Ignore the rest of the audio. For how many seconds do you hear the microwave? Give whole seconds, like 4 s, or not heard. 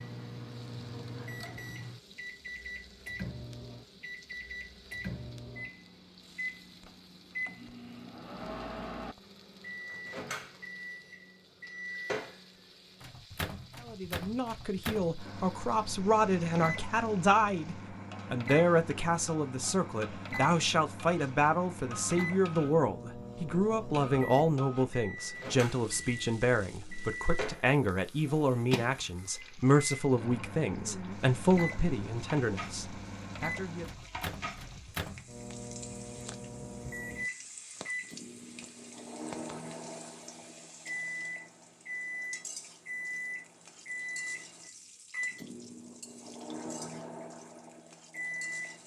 49 s.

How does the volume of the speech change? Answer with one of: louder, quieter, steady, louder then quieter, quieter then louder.
steady.